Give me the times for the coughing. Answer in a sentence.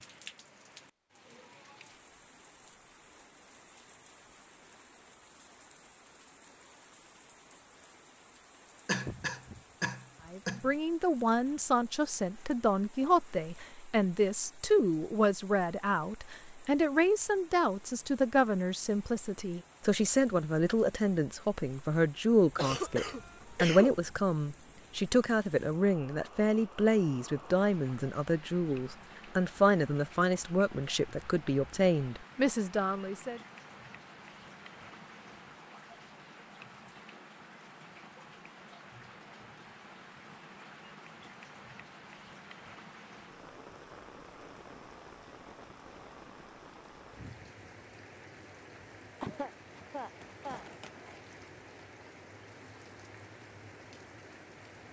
You can hear the coughing from 8.8 to 10.7 s, from 22.6 to 23.9 s and from 49.2 to 50.6 s.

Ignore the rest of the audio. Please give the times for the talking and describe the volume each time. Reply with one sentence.
You can hear the talking from 10.3 to 33.4 s, at a steady volume.